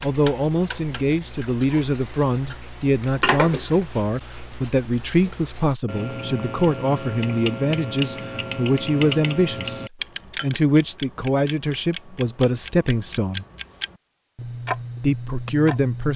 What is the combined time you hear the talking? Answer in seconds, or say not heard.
14 s.